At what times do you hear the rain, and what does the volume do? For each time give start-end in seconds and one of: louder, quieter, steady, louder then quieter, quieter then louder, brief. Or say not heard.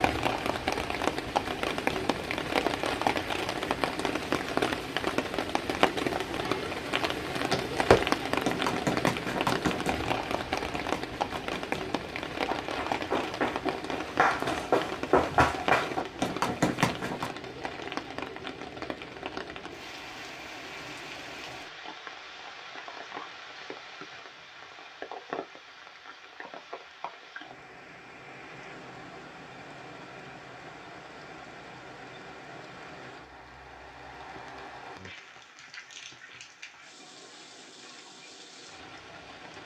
0.0-39.6 quieter.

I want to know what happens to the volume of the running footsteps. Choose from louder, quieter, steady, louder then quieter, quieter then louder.
quieter then louder.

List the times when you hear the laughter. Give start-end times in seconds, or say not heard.
not heard.